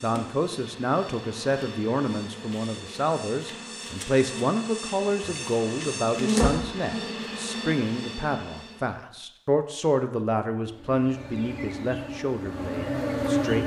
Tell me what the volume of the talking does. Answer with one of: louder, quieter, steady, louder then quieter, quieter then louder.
steady.